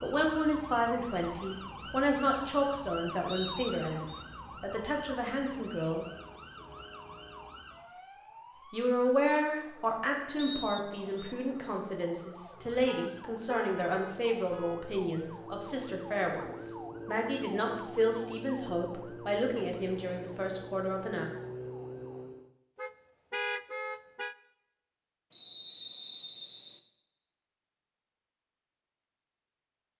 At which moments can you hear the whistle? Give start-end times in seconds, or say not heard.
3.2-4.2, 10.3-11.3, 25.3-26.8.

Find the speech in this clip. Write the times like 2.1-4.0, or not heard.
0.0-6.0, 8.7-21.2.